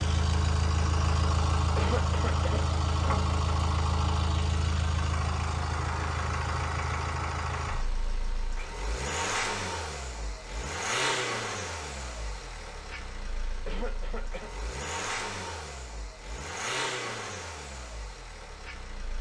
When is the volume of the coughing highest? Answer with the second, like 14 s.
2 s.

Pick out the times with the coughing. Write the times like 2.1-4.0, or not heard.
1.8-2.6, 13.7-14.5.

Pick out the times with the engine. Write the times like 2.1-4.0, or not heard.
0.0-19.1.